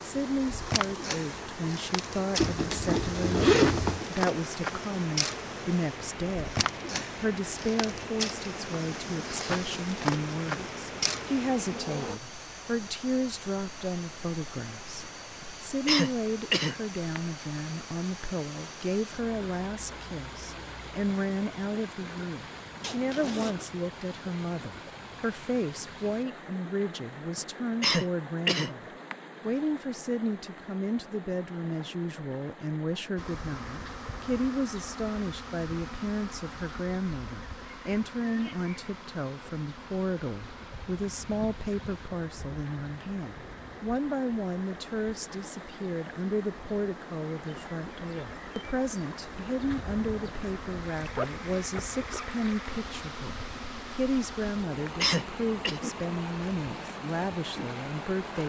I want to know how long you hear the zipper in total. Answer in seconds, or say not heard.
4 s.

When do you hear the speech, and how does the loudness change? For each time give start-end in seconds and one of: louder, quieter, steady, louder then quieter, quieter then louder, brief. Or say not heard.
0.0-58.4 steady.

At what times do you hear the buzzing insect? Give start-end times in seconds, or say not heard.
0.0-12.2, 33.1-58.4.